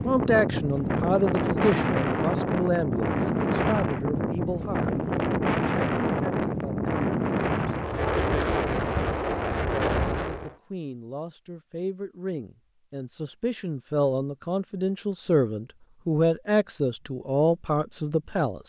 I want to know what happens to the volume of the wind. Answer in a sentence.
The loudness of the wind stays about the same.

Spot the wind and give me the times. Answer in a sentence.
You can hear the wind from 0.0 to 10.6 s.